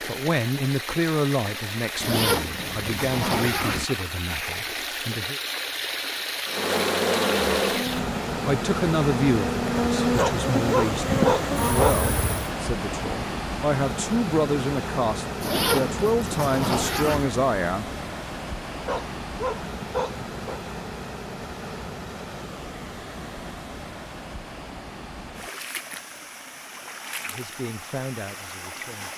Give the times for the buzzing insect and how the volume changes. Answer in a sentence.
You can hear the buzzing insect from 6.5 to 12.5 s, getting quieter then louder.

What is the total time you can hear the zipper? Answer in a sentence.
The zipper can be heard for 4 seconds in total.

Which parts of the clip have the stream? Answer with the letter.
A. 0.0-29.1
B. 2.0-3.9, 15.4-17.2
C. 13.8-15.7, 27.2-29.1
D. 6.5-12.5
A.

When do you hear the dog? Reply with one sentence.
You can hear the dog from 10.2 to 12.1 s and from 18.9 to 20.6 s.